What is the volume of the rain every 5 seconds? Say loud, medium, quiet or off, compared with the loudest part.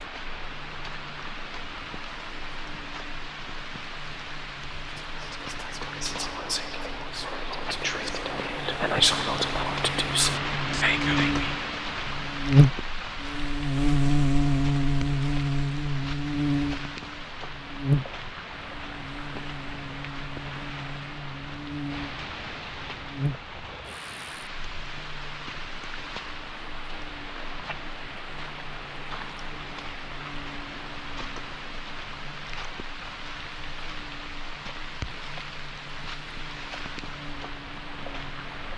medium, loud, loud, medium, medium, medium, medium, medium.